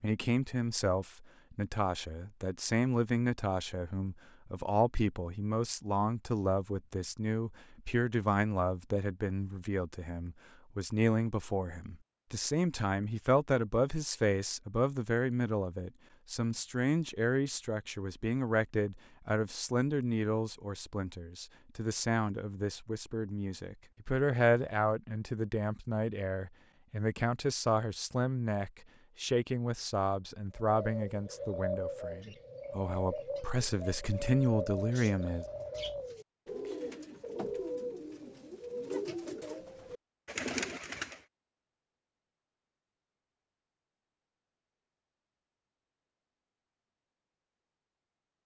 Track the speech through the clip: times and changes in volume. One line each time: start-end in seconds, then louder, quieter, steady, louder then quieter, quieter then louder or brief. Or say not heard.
0.0-35.5 steady.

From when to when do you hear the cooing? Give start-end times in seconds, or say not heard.
30.6-41.2.